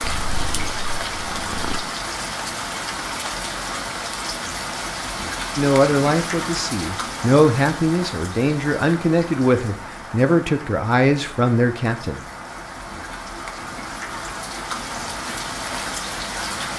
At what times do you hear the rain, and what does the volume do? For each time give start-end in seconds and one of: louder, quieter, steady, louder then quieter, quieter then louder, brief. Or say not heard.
0.0-16.7 quieter then louder.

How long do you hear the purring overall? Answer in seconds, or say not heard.
2 s.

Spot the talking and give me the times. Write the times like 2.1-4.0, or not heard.
5.5-12.2.